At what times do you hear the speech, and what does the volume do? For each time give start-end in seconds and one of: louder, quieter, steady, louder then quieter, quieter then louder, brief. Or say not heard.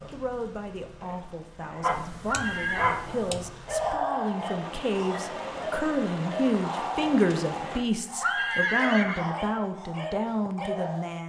0.1-11.2 louder.